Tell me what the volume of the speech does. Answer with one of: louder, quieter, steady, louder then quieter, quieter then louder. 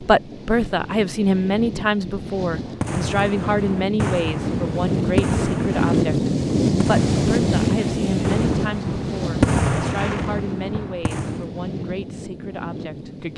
quieter.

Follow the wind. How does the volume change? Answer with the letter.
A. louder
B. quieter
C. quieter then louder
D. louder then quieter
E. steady
D.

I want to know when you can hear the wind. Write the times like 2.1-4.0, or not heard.
0.0-13.3.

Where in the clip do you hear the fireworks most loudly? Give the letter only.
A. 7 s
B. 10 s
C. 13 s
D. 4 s
B.